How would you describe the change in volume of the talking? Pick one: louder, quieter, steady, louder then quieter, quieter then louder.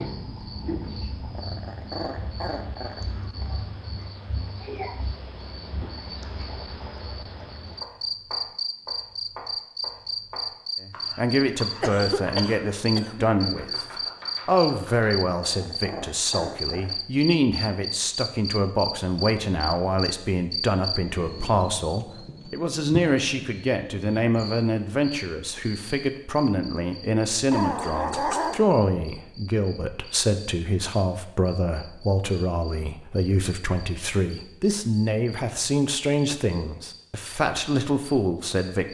steady.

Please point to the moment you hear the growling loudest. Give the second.
28 s.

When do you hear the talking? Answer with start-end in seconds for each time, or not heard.
10.8-13.8, 14.4-38.8.